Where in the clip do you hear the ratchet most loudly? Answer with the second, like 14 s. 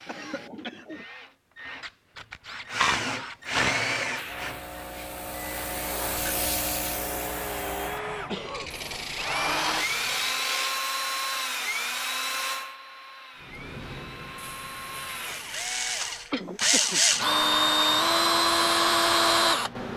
3 s.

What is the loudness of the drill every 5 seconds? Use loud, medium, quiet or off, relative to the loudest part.
medium, medium, medium, loud.